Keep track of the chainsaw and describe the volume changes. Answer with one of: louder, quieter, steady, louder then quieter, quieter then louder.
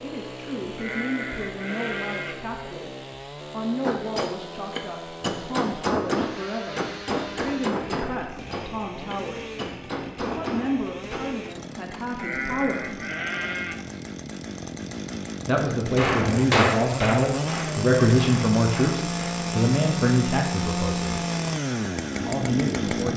louder.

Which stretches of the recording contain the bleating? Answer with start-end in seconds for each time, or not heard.
0.8-2.4, 12.2-13.8.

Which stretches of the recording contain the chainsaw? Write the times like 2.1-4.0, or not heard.
0.0-23.1.